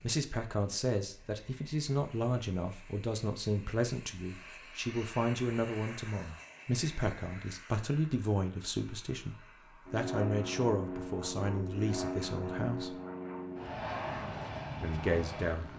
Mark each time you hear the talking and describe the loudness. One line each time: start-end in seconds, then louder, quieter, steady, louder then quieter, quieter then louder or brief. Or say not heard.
0.0-12.9 steady
14.8-15.7 brief.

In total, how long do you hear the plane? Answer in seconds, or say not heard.
16 s.